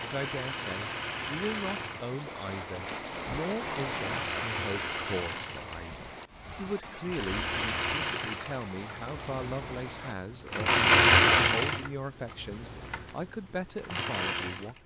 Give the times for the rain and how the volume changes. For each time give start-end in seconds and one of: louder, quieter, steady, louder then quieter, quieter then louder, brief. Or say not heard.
0.0-10.2 louder then quieter.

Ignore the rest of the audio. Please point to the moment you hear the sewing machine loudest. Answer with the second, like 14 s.
11 s.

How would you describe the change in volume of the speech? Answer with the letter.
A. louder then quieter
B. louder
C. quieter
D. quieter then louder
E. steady
E.